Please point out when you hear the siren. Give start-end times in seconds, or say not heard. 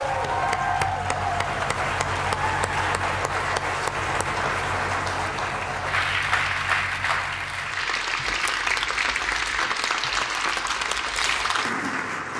not heard.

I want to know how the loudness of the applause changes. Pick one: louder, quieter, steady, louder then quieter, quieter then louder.
steady.